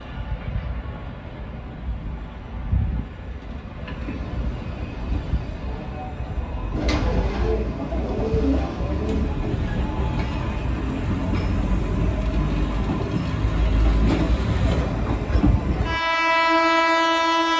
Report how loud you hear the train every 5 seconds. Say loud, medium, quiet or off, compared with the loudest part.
quiet, medium, medium, loud.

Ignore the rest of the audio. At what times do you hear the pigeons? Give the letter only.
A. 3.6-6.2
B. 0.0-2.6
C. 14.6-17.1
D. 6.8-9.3
D.